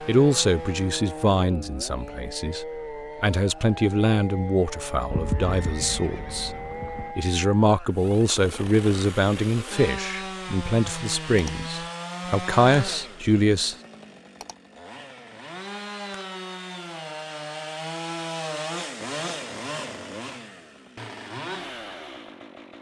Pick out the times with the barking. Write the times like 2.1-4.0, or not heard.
not heard.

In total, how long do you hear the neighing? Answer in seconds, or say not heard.
2 s.